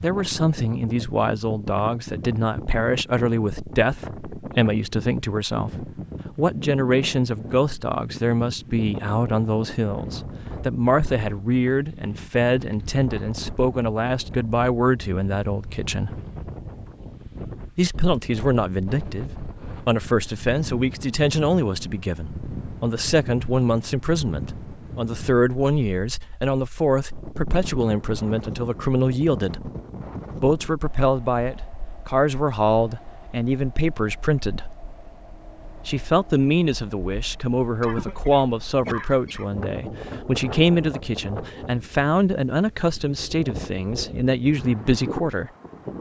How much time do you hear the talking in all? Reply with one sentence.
You can hear the talking for 42 seconds altogether.